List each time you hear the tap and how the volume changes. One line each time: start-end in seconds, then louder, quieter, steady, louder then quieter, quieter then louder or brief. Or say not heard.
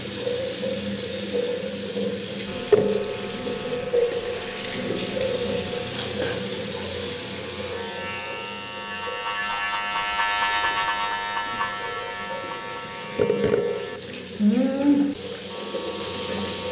0.0-16.6 quieter then louder.